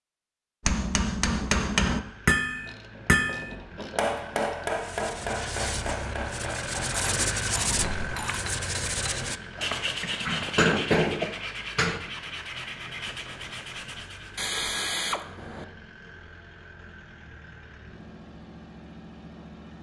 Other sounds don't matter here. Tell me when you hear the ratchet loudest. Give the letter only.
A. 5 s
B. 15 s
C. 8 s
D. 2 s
B.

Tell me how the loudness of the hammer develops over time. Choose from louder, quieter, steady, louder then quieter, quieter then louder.
quieter then louder.